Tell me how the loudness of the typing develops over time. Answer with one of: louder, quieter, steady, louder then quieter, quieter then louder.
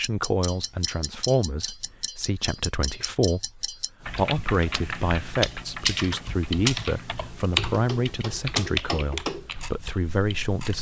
louder then quieter.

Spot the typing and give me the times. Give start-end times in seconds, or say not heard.
4.0-10.7.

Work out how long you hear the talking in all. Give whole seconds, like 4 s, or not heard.
11 s.